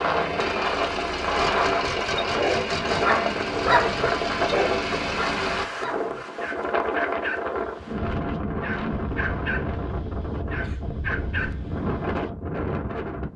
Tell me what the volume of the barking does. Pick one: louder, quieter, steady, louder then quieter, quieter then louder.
quieter.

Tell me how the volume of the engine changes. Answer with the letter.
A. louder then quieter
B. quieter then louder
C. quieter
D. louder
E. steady
E.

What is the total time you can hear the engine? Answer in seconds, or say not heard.
6 s.